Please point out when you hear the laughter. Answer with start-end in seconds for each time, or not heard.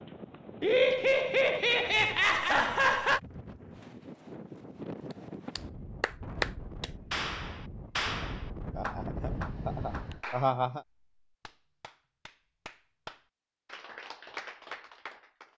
0.6-3.2, 8.8-10.8.